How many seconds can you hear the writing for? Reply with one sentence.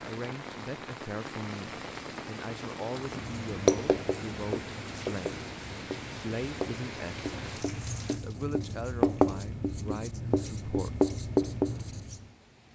You can hear the writing for 9 seconds altogether.